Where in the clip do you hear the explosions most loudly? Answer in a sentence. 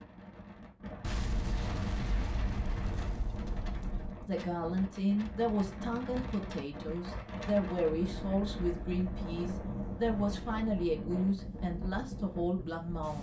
The volume of the explosions peaks at 2 seconds.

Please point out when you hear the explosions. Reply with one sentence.
You can hear the explosions from 1.0 to 4.3 s.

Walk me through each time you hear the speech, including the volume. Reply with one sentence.
You can hear the speech from 4.2 to 13.1 s, at a steady volume.